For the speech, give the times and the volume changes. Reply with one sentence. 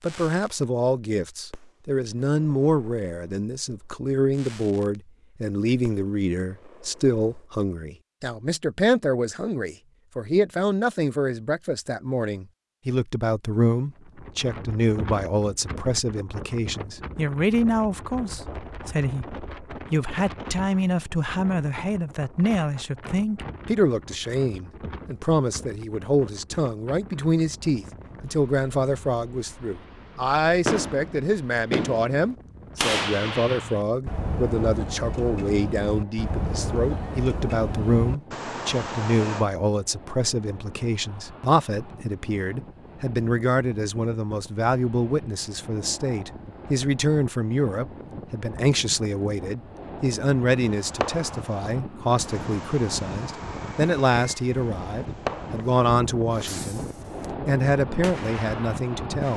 The speech can be heard from 0.0 to 56.9 s, at a steady volume; and briefly from 57.5 to 59.3 s.